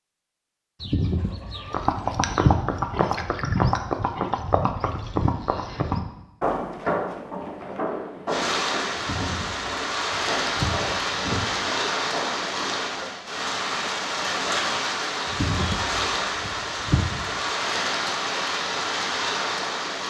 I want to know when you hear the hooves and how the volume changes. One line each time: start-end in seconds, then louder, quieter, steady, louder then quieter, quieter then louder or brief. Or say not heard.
1.6-13.1 quieter.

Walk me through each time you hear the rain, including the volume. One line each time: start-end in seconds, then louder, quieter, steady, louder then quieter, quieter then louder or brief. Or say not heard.
8.2-20.0 steady.